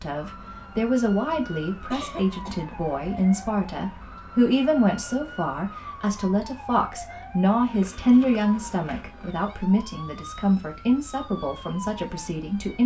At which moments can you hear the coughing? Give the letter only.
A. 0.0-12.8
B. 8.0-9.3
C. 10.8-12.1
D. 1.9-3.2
D.